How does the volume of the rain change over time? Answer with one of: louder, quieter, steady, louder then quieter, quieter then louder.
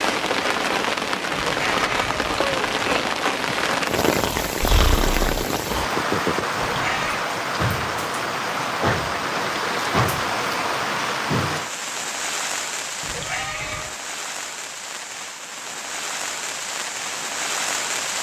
quieter.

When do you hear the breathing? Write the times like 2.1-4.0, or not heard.
4.2-5.8.